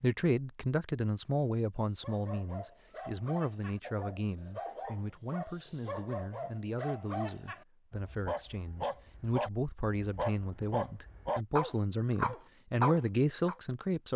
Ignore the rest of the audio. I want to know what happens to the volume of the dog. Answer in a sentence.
The volume of the dog goes up.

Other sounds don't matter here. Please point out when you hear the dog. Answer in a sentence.
You can hear the dog from 2.0 to 13.6 s.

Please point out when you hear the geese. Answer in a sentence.
The geese can't be heard in this clip.